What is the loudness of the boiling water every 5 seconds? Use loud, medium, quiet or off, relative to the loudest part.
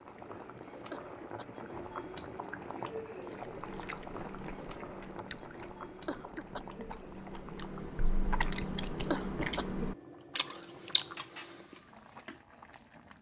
loud, medium, medium.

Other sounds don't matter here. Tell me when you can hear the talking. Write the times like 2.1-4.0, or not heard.
not heard.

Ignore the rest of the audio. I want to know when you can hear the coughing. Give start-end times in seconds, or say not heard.
0.9-1.6, 6.0-6.8, 9.1-9.9.